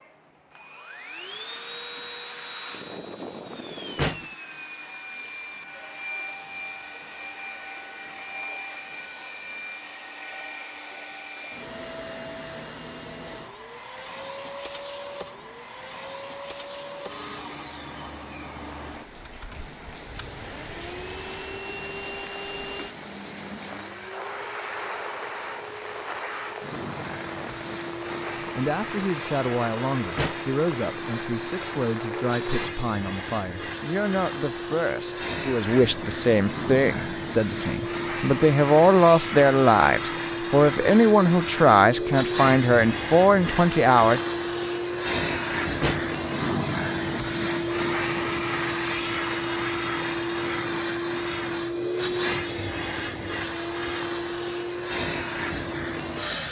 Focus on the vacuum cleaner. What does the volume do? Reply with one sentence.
The loudness of the vacuum cleaner goes up.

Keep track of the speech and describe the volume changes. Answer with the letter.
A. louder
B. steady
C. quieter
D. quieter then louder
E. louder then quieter
A.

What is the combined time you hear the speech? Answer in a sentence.
You can hear the speech for 16 seconds altogether.